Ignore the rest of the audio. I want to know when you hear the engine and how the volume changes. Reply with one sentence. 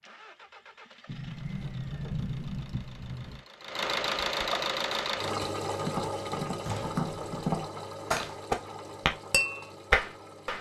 You can hear the engine from 0.0 to 10.5 s, getting louder then quieter.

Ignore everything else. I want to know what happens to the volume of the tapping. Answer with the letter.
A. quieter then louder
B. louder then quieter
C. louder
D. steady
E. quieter
C.